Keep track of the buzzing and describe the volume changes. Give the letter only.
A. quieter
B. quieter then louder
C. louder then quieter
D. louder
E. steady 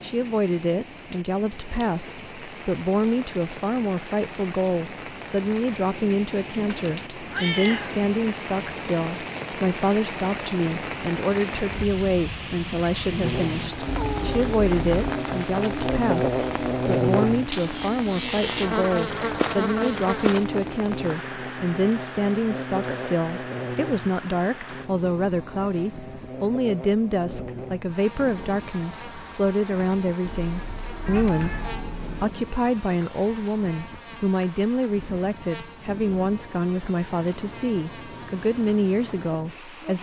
A.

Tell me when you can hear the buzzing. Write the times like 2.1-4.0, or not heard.
13.2-39.9.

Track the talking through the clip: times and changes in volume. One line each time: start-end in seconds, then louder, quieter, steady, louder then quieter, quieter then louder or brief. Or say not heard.
0.0-39.9 steady.